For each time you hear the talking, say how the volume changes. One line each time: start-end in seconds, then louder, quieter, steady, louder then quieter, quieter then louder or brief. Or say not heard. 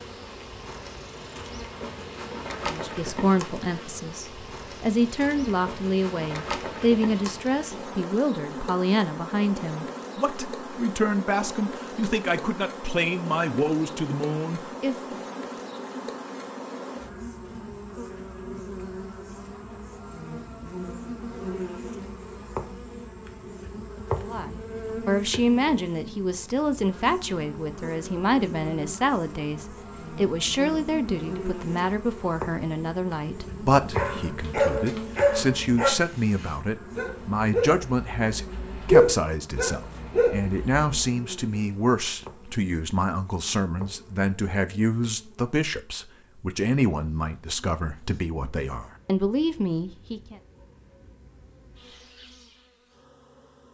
2.6-14.9 steady
24.2-50.4 steady.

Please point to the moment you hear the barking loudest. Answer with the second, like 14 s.
39 s.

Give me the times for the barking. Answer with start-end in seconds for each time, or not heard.
33.3-41.0.